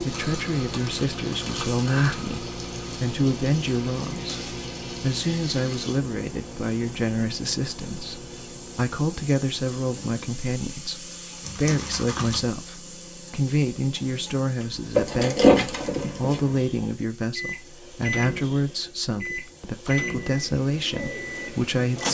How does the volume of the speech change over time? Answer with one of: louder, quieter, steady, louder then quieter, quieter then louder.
steady.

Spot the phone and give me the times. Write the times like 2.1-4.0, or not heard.
not heard.